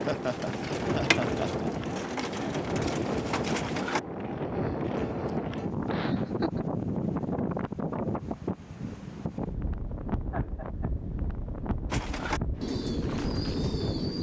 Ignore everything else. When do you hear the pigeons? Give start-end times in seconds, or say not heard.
0.0-4.0, 11.9-14.1.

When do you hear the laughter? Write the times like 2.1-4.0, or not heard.
0.1-1.6, 5.8-6.6, 10.3-10.9.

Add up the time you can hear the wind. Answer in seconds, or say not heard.
14 s.